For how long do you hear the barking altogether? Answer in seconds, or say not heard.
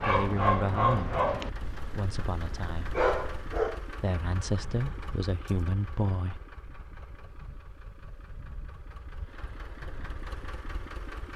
4 s.